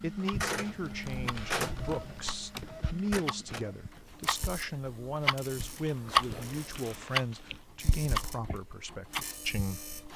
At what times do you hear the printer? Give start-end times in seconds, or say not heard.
0.0-10.1.